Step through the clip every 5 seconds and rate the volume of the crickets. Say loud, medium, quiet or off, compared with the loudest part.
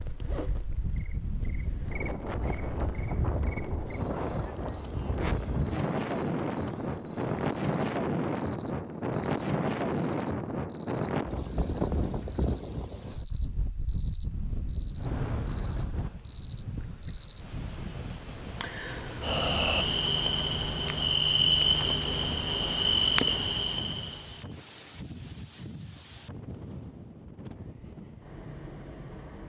quiet, medium, medium, loud, loud, off.